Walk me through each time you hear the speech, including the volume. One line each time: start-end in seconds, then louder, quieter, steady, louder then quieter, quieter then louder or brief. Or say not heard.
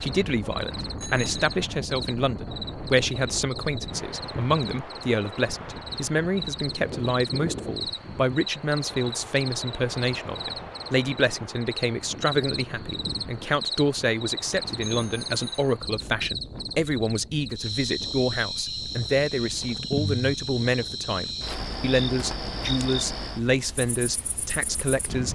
0.0-25.3 steady.